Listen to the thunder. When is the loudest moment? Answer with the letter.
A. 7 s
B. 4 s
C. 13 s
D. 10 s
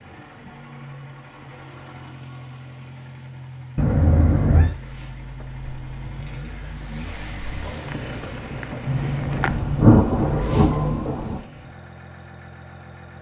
D.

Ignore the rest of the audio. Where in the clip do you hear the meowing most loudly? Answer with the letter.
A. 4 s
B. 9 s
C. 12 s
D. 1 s
A.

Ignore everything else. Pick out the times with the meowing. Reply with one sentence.
You can hear the meowing from 3.8 to 4.8 s and from 8.8 to 11.1 s.